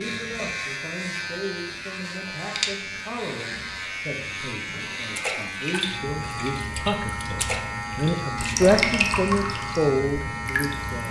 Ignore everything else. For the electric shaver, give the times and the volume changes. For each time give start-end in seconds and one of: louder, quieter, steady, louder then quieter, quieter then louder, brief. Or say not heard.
0.0-11.0 steady.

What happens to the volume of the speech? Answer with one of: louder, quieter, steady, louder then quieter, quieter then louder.
louder.